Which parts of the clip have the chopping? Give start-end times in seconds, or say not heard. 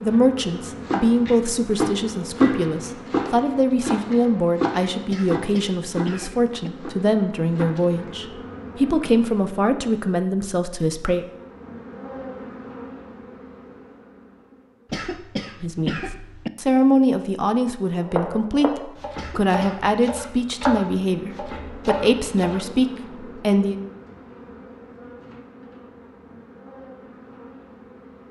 0.7-8.2, 18.0-22.6.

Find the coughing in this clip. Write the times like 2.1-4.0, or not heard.
5.0-6.7, 14.9-16.5, 19.1-19.9.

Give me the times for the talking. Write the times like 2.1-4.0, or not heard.
0.0-11.2, 15.6-23.8.